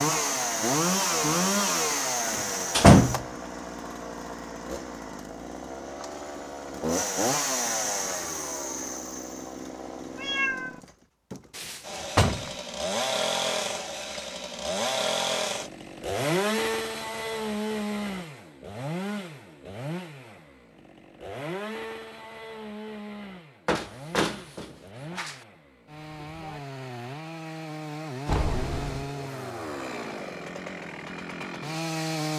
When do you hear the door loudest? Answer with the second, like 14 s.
3 s.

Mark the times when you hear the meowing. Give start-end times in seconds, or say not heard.
10.2-10.8, 28.2-29.1.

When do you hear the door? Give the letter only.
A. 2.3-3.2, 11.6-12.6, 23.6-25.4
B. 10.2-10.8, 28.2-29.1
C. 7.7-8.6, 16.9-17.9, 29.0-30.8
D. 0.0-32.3
A.